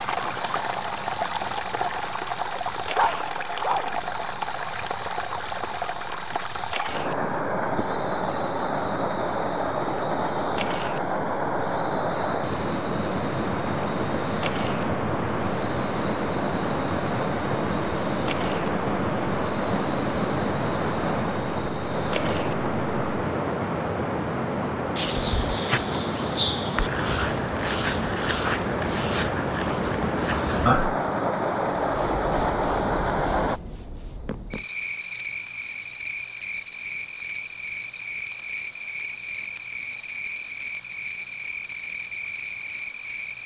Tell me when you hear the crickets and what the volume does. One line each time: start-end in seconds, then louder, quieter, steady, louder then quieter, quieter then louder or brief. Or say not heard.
0.0-43.4 steady.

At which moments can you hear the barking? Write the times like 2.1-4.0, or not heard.
3.0-4.0.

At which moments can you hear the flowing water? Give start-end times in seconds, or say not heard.
0.0-33.6.